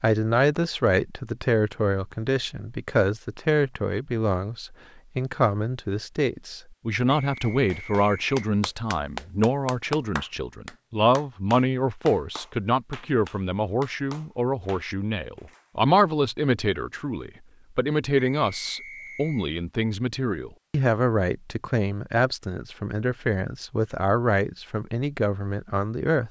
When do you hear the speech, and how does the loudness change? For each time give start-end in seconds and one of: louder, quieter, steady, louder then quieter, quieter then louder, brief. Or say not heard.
0.0-26.2 steady.